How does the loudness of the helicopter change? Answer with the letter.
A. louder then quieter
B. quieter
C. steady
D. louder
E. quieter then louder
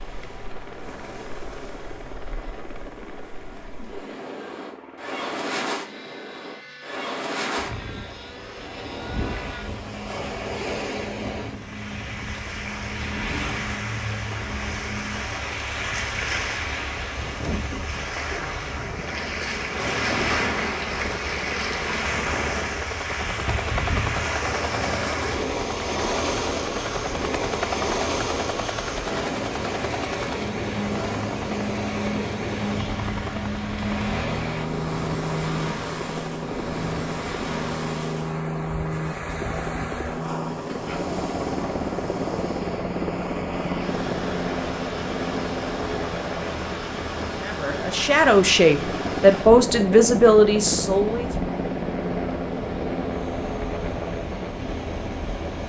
D.